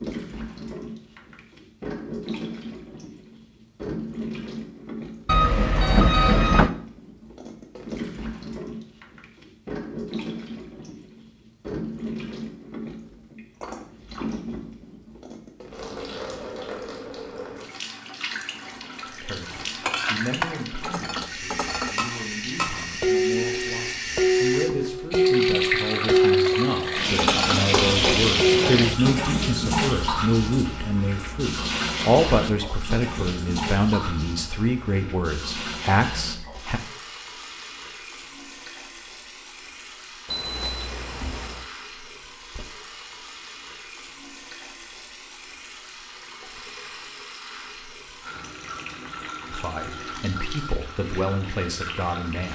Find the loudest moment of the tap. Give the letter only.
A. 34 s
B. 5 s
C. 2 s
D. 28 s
D.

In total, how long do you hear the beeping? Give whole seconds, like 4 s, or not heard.
3 s.